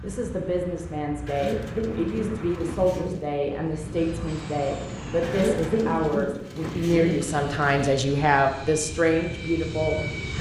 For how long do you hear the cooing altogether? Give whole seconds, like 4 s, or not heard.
5 s.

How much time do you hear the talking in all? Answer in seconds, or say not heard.
10 s.